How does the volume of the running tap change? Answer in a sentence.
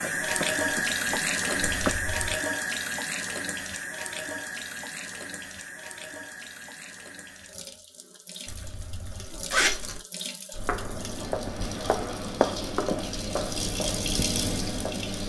The volume of the running tap goes down, then up.